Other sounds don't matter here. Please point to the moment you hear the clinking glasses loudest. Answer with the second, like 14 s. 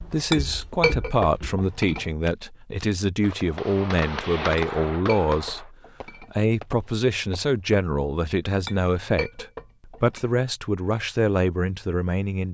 1 s.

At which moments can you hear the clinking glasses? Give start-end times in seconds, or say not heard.
0.3-2.0, 4.5-6.3, 8.7-10.2.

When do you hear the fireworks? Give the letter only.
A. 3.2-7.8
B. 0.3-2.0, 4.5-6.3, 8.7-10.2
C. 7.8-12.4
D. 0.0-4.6
A.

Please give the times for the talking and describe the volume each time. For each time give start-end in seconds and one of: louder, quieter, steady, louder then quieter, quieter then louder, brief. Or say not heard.
0.0-12.4 steady.